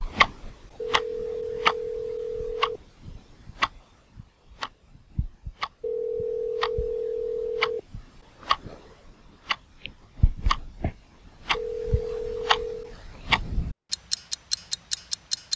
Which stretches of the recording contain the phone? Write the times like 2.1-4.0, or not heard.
0.8-2.8, 5.8-7.8, 11.5-12.9.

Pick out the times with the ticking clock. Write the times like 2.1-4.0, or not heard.
0.0-15.5.